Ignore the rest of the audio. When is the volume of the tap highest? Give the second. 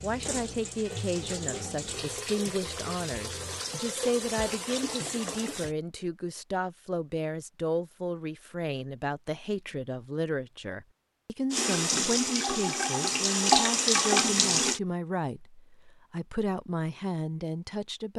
14 s.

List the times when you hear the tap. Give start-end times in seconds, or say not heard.
0.0-5.8, 11.5-14.8.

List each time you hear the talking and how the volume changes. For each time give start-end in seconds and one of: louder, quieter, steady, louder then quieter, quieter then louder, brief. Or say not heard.
0.0-18.1 steady.